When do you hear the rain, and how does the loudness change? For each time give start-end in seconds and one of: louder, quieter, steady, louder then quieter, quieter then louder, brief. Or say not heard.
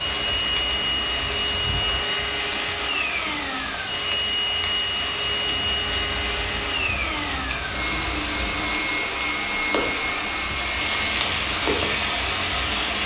0.0-13.0 louder.